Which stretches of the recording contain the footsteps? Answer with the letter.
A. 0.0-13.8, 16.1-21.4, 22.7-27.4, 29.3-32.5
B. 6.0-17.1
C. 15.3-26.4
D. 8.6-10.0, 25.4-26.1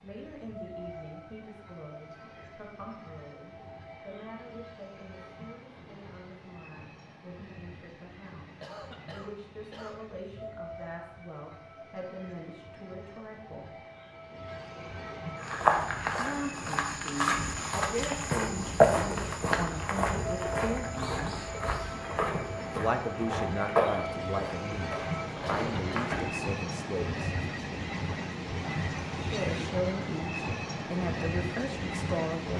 C.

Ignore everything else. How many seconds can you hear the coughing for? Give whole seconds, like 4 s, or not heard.
2 s.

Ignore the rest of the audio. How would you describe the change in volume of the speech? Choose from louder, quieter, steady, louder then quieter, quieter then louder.
louder.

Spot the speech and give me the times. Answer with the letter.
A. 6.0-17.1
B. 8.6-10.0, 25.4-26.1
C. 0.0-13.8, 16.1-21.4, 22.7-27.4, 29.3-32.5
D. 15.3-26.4
C.